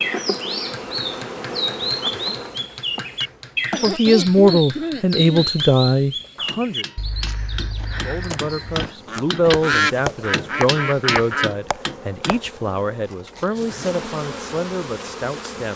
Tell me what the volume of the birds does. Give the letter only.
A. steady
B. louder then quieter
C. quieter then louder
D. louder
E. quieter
C.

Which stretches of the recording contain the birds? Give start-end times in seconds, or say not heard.
0.0-11.5.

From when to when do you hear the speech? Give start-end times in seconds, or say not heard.
3.8-6.8, 8.1-15.7.